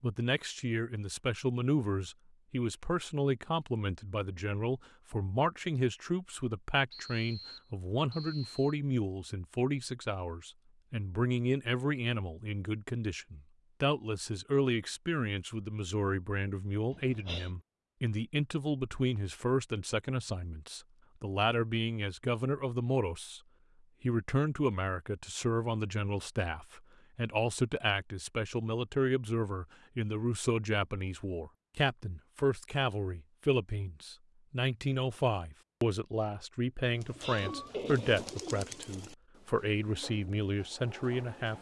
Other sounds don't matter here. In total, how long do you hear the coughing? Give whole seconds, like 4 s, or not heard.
2 s.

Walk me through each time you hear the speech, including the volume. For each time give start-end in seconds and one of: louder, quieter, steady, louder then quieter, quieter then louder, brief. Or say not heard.
0.0-23.4 steady
24.0-41.5 steady.